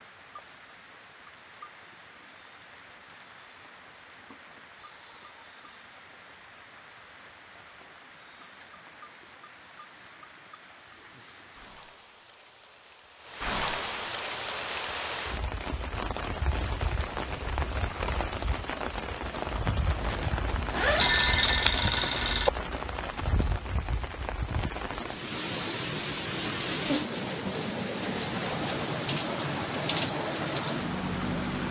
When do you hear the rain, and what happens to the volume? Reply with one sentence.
You can hear the rain from 0.0 to 31.6 s, getting louder.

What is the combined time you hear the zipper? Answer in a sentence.
The zipper can be heard for 2 seconds in total.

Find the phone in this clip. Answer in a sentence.
You can hear the phone from 20.9 to 22.5 s.